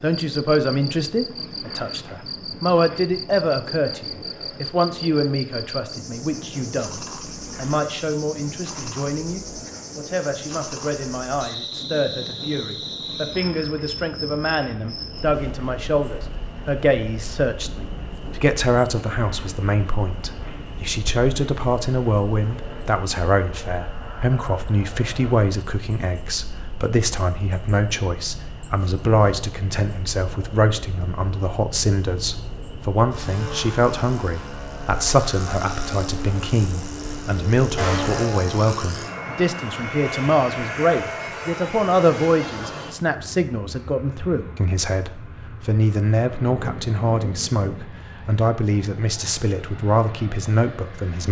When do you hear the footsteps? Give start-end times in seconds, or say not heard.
not heard.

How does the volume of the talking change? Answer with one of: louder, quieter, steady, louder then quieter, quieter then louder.
steady.